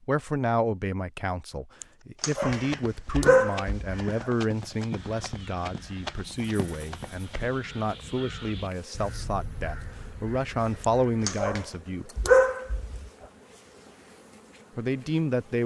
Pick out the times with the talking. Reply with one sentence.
The talking can be heard from 0.1 to 12.2 s and from 14.8 to 15.6 s.